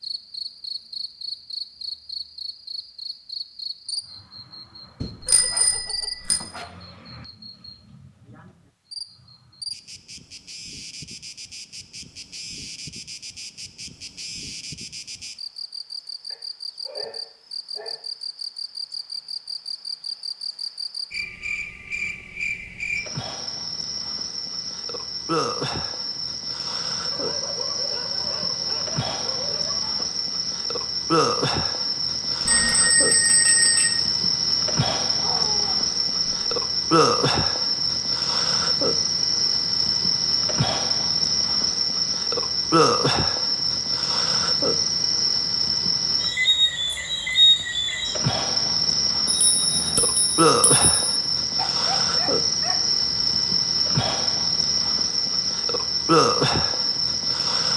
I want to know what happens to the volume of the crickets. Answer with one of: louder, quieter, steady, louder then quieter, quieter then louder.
louder.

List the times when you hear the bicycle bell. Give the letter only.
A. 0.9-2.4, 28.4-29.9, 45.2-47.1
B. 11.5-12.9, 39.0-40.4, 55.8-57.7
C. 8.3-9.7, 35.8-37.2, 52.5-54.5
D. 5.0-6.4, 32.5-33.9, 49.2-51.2
D.